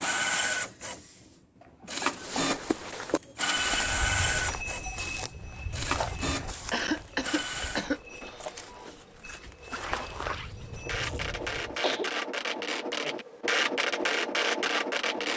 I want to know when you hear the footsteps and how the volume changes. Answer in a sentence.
You can hear the footsteps from 2.1 to 11.8 s, getting quieter then louder.